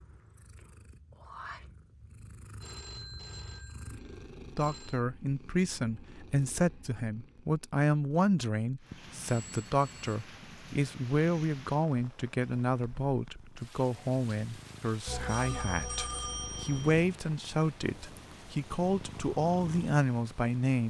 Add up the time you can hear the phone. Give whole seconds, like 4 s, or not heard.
5 s.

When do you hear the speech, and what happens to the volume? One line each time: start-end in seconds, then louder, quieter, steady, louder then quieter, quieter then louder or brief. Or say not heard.
4.5-20.8 steady.